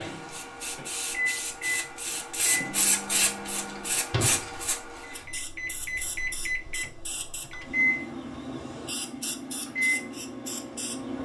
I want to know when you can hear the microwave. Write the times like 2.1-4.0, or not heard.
0.0-11.2.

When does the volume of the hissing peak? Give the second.
3 s.